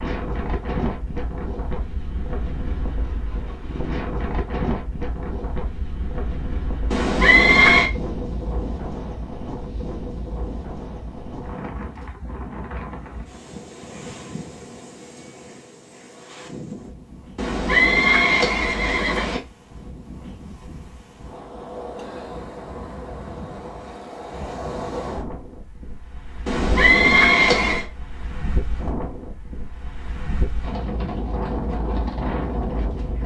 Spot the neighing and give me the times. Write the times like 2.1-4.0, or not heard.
6.9-7.9, 17.4-19.4, 26.4-27.9.